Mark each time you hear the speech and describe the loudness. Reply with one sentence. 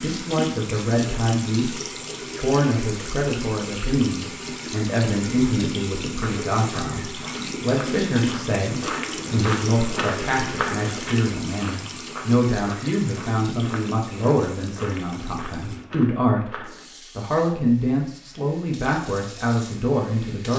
The speech can be heard briefly from 0.0 to 1.8 s; and from 2.4 to 20.5 s, at a steady volume.